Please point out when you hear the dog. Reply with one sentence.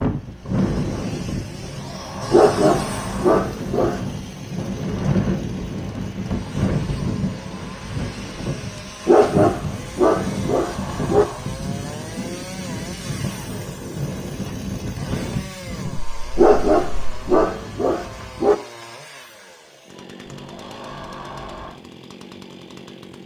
You can hear the dog from 2.3 to 4.0 s, from 9.1 to 11.2 s and from 16.4 to 18.6 s.